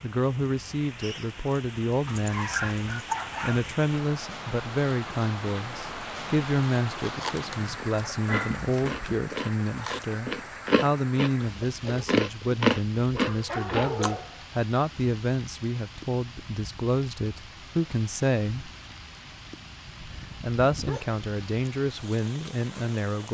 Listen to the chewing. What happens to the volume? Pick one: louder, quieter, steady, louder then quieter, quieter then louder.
louder.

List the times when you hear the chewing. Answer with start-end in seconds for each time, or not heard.
7.0-14.1.